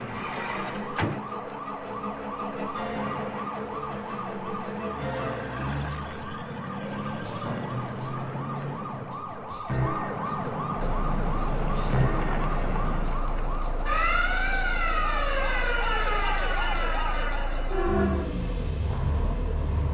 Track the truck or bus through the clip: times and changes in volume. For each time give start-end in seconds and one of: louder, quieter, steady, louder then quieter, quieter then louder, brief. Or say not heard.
10.8-19.8 louder.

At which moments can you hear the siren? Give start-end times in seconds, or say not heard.
0.0-18.4.